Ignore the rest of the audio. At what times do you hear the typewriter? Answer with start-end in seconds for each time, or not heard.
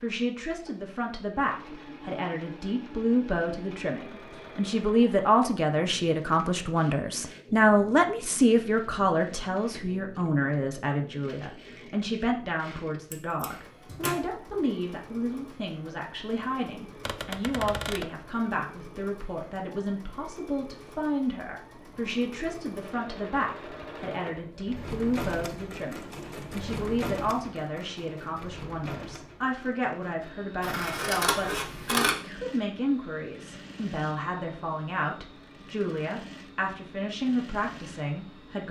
17.0-18.1.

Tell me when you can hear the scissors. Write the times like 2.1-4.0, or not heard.
13.1-14.2, 30.6-32.1.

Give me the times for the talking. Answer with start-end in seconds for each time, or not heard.
0.0-38.6.